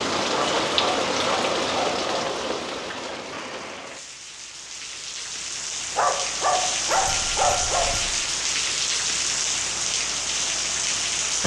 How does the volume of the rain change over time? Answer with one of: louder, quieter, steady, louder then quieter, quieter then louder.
quieter then louder.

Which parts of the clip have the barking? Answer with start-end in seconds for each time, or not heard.
0.3-2.2, 6.0-7.9.